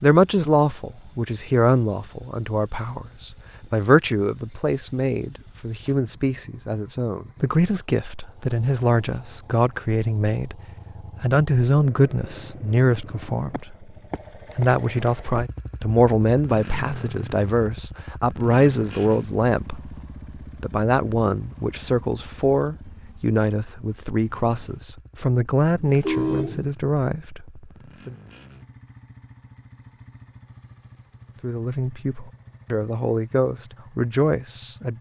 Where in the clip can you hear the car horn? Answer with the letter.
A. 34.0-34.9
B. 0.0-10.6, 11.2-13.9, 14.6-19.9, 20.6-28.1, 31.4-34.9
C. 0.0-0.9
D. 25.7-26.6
D.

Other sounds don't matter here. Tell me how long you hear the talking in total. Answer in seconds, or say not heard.
30 s.